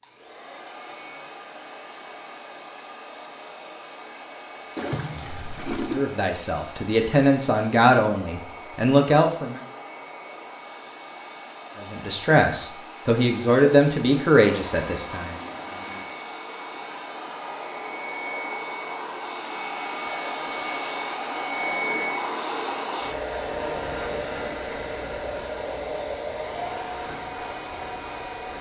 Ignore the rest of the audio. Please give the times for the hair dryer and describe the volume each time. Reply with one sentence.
You can hear the hair dryer from 0.0 to 28.5 s, getting louder.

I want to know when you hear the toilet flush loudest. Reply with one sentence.
The loudest moment of the toilet flush is at 5 seconds.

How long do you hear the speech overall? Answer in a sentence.
The speech can be heard for 7 seconds in total.